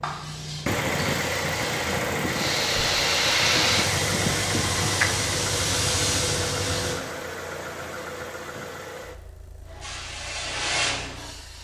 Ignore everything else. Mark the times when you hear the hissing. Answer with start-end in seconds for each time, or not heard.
0.0-7.0, 9.7-11.5.